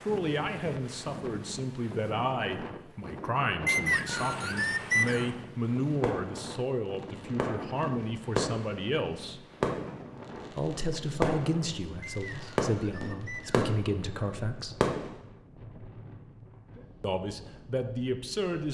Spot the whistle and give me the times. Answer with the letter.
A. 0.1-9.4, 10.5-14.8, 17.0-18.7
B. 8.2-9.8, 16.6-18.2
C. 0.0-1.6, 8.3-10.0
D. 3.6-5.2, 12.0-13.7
D.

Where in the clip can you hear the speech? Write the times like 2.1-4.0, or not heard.
0.1-9.4, 10.5-14.8, 17.0-18.7.